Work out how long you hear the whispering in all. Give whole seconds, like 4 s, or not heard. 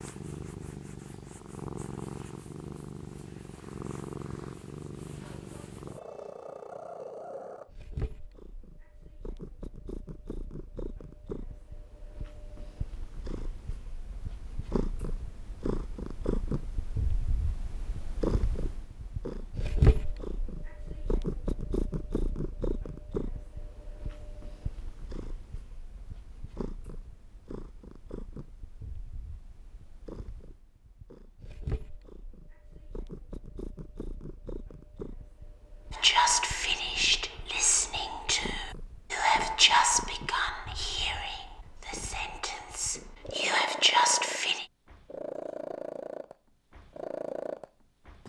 9 s.